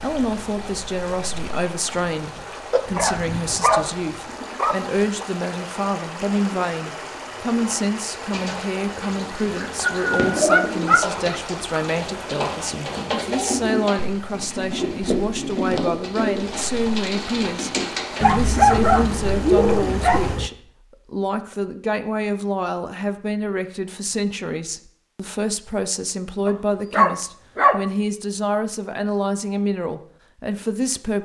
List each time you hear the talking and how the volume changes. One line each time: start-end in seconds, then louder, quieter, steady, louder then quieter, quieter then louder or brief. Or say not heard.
0.0-31.1 steady.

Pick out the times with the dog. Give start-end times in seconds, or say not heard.
2.7-4.8, 9.6-11.4, 18.2-20.5, 26.4-27.9.